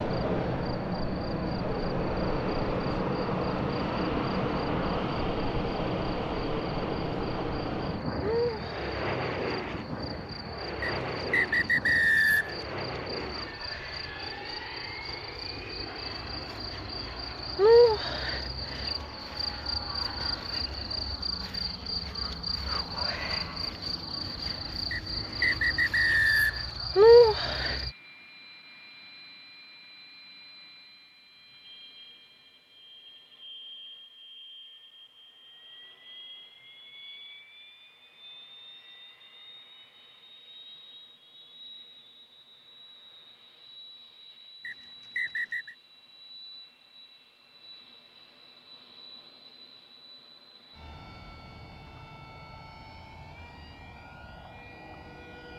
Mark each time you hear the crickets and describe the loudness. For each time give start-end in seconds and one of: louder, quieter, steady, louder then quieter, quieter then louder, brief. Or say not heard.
0.0-27.9 louder.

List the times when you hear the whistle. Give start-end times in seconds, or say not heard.
10.8-12.6, 24.9-26.7, 44.6-45.8.